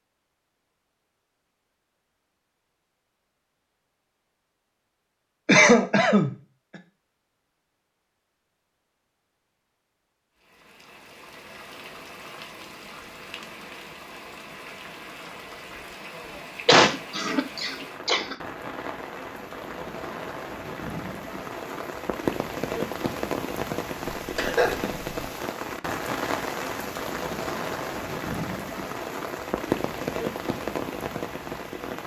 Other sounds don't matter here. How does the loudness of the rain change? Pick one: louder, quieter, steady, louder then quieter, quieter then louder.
louder.